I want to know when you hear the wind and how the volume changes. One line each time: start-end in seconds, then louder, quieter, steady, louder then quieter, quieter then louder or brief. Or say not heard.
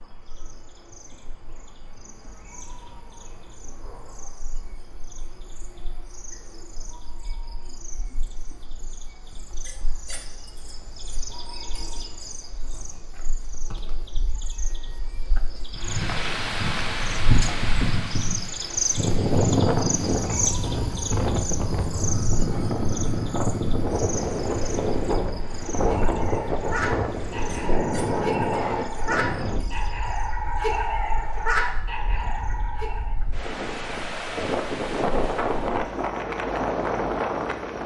15.7-37.8 quieter then louder.